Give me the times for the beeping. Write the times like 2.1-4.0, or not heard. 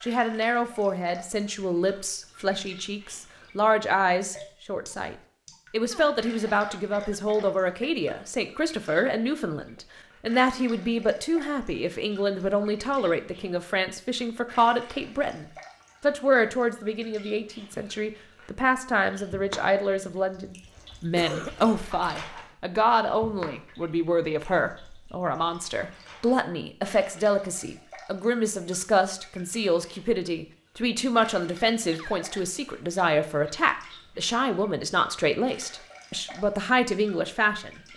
not heard.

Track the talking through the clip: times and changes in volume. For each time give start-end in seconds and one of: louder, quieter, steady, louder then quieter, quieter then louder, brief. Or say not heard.
0.0-37.9 steady.